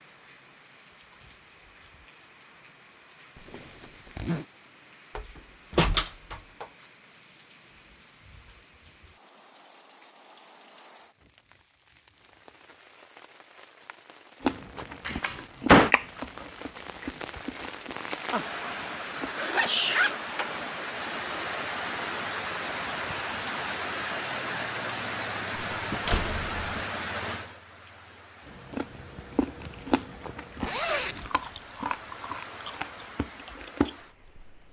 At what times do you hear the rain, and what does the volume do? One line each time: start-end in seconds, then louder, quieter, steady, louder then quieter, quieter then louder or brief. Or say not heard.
0.0-34.6 louder then quieter.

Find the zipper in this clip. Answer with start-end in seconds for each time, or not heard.
3.4-4.5, 19.4-20.6, 30.6-31.6.